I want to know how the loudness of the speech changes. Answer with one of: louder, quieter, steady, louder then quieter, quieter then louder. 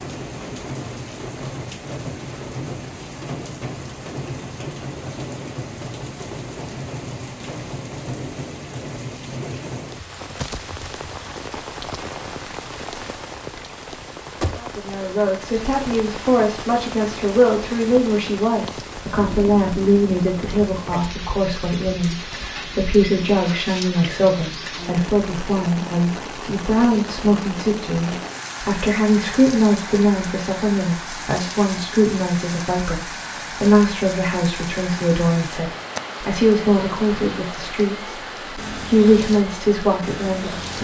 steady.